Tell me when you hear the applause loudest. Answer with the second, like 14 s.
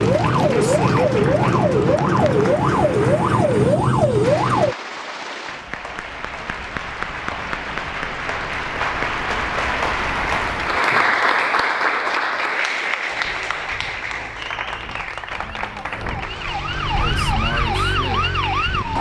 11 s.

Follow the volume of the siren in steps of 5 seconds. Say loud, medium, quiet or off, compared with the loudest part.
loud, off, quiet, medium.